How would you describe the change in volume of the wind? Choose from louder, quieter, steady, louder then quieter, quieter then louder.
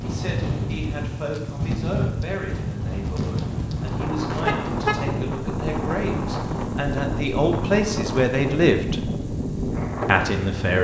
steady.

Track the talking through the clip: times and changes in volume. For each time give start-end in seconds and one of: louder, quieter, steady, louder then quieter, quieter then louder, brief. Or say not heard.
0.0-9.1 louder
10.1-10.7 brief.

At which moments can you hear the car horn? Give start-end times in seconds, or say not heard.
4.5-5.0.